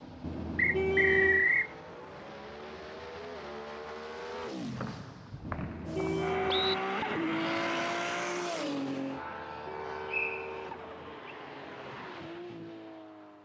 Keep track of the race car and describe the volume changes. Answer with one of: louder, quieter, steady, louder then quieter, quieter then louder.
louder then quieter.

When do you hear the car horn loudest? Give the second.
1 s.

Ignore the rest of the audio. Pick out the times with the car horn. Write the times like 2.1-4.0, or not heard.
0.2-1.5, 5.5-6.8, 9.2-11.2.